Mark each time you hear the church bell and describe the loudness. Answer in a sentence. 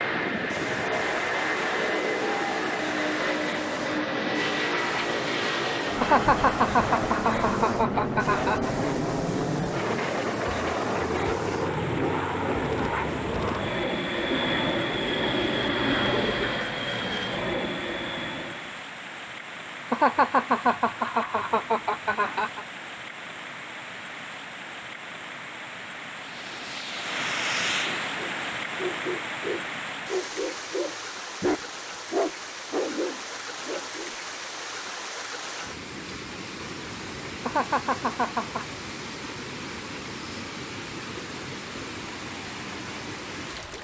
The church bell can't be heard in this clip.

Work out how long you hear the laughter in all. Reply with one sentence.
The laughter can be heard for 7 seconds in total.